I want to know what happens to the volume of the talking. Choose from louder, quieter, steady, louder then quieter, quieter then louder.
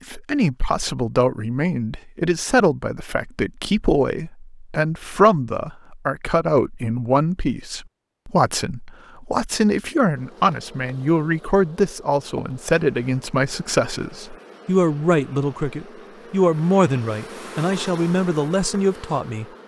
steady.